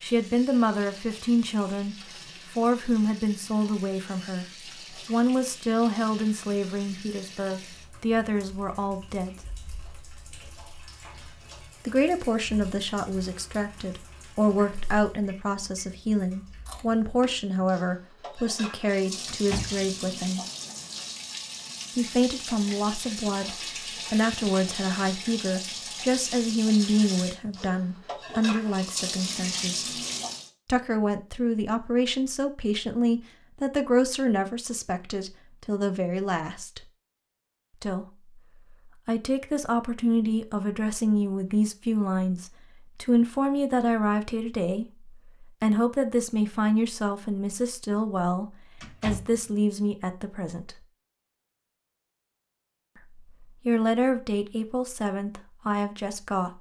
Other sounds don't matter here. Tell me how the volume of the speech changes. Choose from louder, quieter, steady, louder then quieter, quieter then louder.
steady.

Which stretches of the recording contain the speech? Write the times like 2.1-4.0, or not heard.
0.0-9.3, 11.8-20.4, 21.9-30.0, 30.6-36.8, 37.8-50.9, 53.0-56.5.